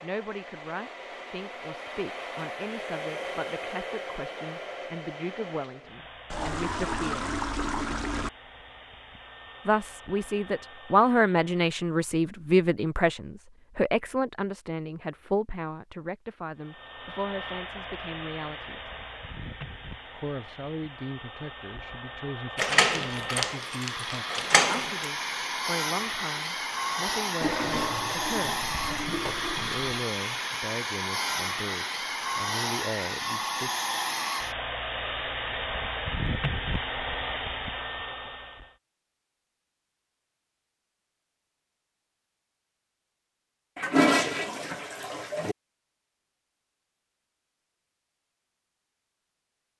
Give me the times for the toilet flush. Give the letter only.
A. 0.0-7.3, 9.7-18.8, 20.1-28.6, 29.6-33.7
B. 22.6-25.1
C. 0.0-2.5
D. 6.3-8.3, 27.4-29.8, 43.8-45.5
D.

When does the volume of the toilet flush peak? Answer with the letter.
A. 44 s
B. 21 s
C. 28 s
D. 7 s
A.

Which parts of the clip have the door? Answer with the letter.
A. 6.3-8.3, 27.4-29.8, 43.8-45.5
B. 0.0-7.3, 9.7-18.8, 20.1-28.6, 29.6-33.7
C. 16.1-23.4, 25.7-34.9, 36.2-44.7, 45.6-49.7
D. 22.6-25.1
D.